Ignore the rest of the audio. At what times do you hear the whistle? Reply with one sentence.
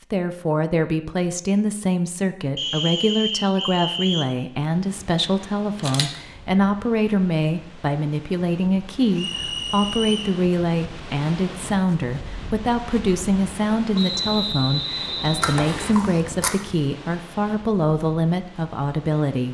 The whistle can be heard from 2.5 to 4.2 s, from 9.2 to 10.3 s and from 13.9 to 15.9 s.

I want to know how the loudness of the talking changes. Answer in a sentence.
The loudness of the talking stays about the same.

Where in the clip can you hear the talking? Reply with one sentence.
You can hear the talking from 0.1 to 19.5 s.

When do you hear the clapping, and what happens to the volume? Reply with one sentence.
You can't hear the clapping here.